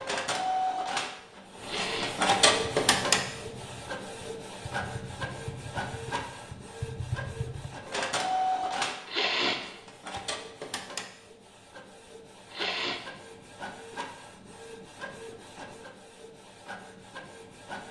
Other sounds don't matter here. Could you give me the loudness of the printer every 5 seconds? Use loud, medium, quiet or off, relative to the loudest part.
loud, medium, quiet, quiet.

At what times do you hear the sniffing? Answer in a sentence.
The sniffing can be heard from 1.6 to 2.1 s, from 9.1 to 10.2 s and from 12.5 to 13.0 s.